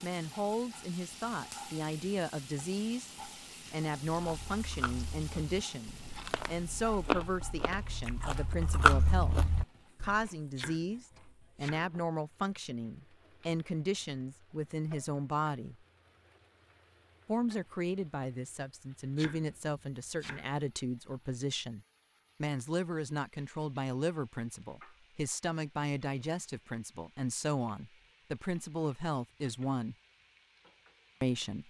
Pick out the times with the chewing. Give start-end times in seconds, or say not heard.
4.0-10.1.